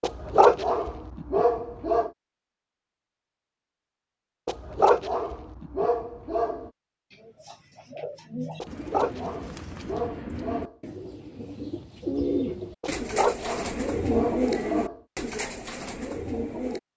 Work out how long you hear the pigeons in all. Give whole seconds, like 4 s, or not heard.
10 s.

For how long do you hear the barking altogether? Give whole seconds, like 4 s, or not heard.
9 s.